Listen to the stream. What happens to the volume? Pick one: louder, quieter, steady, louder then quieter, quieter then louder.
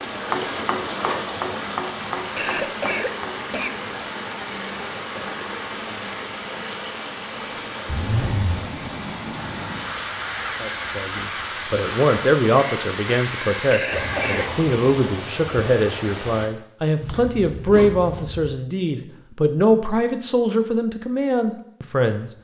steady.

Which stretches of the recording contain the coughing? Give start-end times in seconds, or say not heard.
2.4-3.9, 13.7-14.6.